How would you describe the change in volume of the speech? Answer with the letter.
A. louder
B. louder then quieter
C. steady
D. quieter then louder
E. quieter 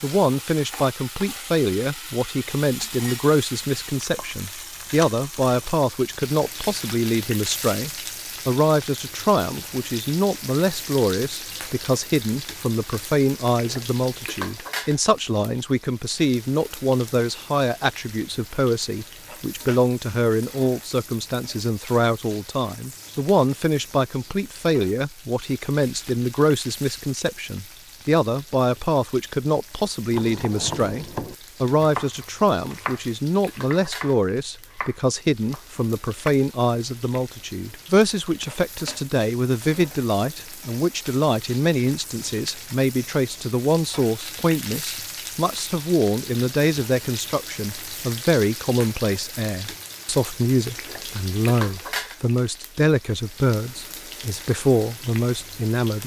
C.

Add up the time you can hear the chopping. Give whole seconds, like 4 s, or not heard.
6 s.